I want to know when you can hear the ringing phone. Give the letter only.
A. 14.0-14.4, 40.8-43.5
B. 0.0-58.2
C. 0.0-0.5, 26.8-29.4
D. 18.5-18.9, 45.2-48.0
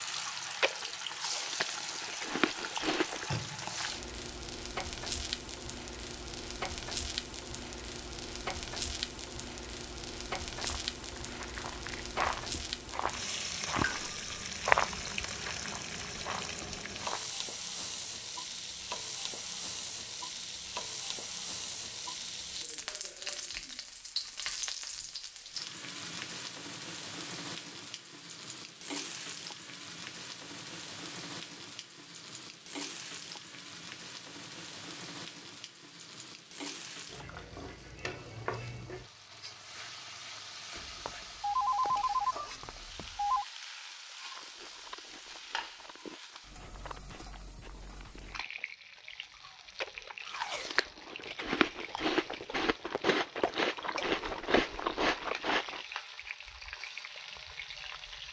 A.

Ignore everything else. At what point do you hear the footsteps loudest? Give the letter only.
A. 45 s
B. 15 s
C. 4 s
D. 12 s
B.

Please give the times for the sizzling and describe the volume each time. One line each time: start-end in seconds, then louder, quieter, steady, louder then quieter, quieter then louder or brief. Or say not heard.
0.0-58.2 quieter.